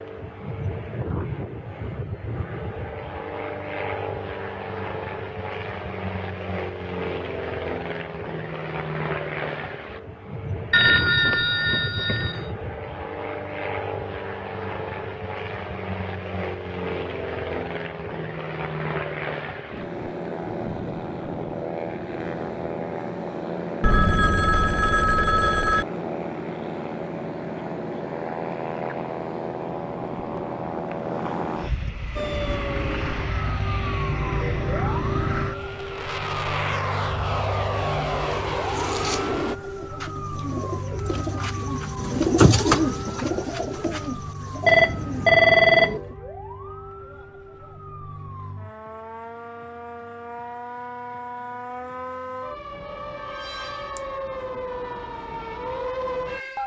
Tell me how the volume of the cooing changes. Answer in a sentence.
The loudness of the cooing goes up, then down.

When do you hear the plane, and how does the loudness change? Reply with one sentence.
You can hear the plane from 0.0 to 39.5 s, at a steady volume.